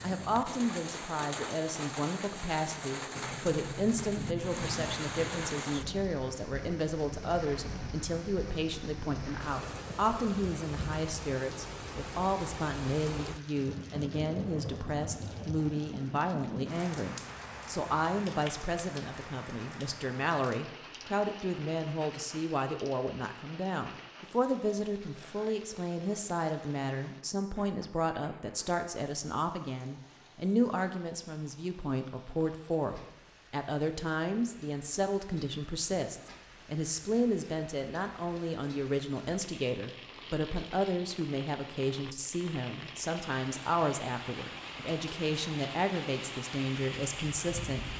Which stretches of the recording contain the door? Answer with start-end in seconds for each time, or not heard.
3.1-5.5.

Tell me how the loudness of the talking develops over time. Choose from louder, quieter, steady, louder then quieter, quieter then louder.
steady.